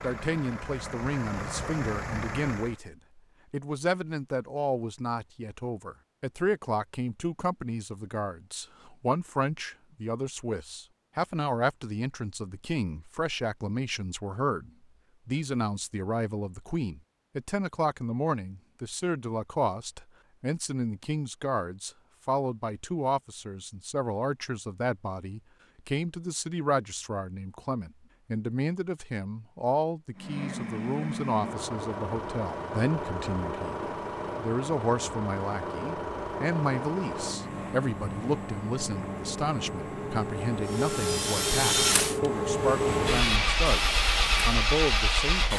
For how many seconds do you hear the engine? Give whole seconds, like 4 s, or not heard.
18 s.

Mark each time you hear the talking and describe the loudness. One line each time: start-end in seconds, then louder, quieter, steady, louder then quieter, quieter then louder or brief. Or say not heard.
0.0-33.8 steady
34.4-45.5 steady.